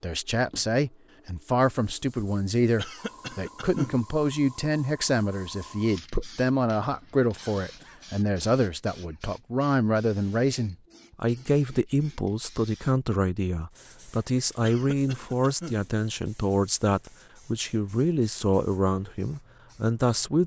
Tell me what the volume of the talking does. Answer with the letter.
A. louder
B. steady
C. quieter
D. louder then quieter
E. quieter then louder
B.